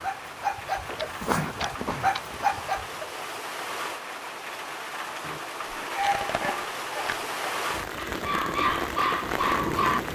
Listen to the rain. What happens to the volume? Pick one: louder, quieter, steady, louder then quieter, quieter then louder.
louder.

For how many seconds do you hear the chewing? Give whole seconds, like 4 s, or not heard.
4 s.